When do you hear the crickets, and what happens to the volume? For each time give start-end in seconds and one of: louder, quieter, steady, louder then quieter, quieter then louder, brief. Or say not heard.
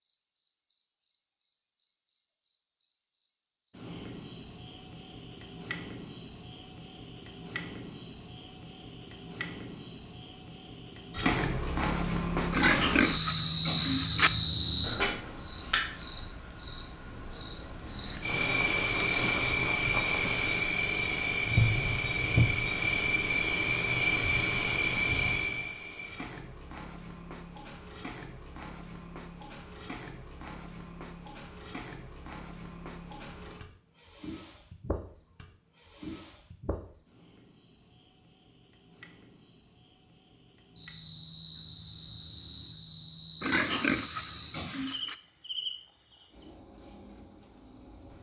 0.0-48.1 quieter.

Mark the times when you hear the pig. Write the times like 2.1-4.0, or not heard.
12.5-14.3, 43.4-45.1.